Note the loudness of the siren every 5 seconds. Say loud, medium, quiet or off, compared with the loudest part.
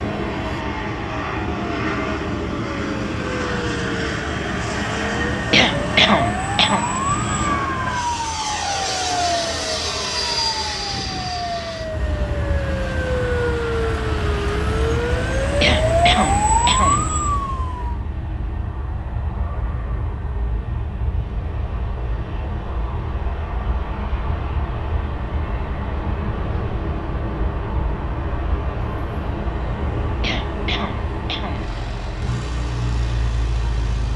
quiet, medium, medium, loud, off, off, off.